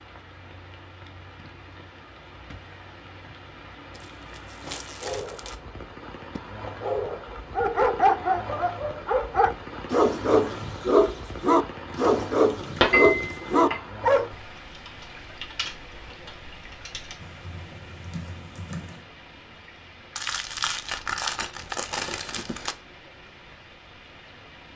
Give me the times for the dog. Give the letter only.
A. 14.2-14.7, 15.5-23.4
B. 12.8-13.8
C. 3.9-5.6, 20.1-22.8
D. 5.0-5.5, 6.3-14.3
D.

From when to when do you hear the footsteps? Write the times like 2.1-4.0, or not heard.
not heard.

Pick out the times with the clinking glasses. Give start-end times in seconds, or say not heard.
12.8-13.8.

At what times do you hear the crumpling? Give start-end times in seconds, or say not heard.
3.9-5.6, 20.1-22.8.